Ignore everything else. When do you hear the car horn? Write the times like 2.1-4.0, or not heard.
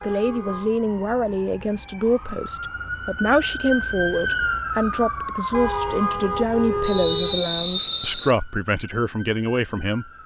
0.0-0.8, 5.5-7.4.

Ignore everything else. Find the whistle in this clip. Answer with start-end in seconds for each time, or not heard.
6.8-8.3.